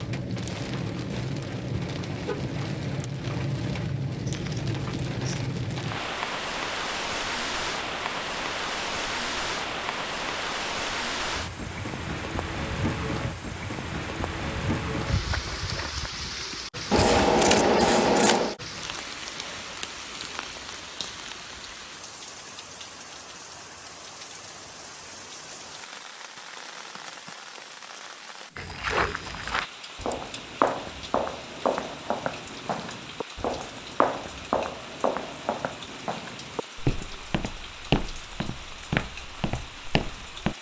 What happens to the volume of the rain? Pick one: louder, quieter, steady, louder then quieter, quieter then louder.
quieter.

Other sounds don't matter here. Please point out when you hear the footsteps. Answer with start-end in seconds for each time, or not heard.
28.6-40.5.